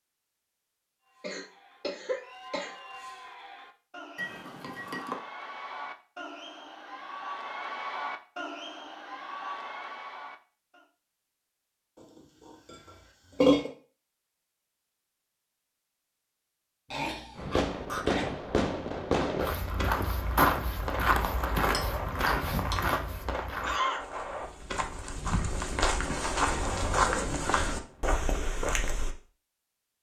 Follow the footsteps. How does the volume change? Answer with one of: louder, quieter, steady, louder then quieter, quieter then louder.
quieter then louder.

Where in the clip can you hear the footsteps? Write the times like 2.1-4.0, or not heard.
19.4-29.1.